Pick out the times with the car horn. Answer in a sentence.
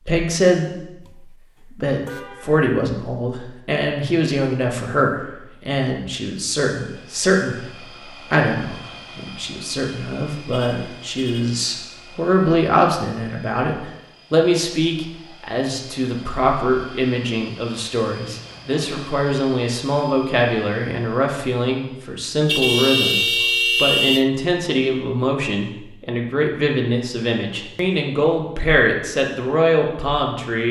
The car horn can be heard from 2.0 to 2.6 s, from 10.5 to 11.6 s and from 22.4 to 24.2 s.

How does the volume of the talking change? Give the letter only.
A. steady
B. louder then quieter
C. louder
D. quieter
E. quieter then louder
A.